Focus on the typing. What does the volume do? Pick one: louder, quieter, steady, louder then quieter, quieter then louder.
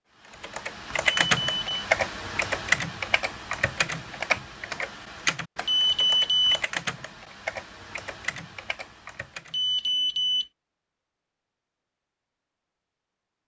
quieter.